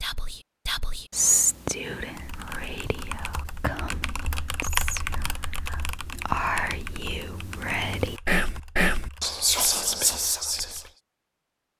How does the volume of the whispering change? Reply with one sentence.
The volume of the whispering goes down, then up.